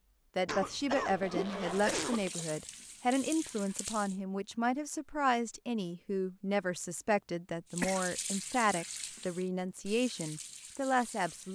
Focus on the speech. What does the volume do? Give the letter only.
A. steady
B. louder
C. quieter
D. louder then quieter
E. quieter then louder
A.